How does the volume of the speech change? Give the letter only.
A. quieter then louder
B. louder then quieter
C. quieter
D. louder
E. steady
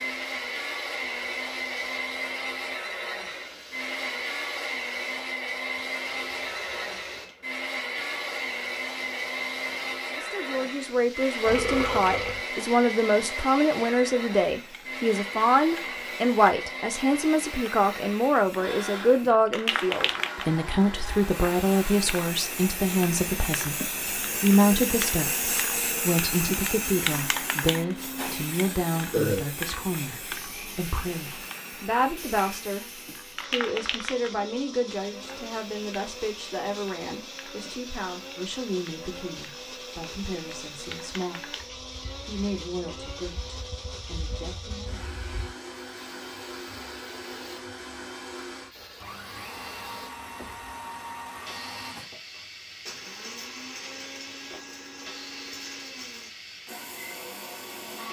C.